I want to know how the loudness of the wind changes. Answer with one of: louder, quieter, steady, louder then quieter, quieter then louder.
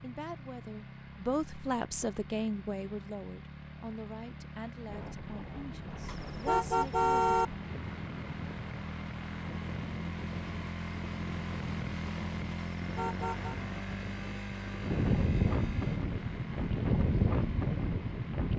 louder.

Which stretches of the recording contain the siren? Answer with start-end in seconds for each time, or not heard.
not heard.